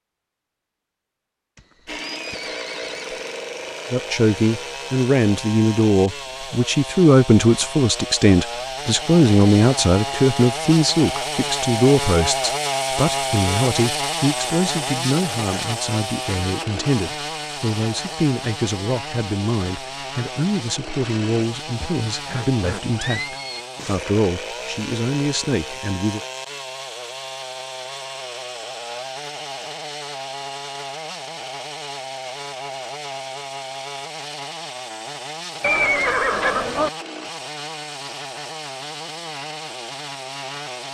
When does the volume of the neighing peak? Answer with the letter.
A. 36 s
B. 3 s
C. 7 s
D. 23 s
A.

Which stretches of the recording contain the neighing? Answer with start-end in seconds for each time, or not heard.
1.6-3.2, 21.8-23.6, 35.6-36.9.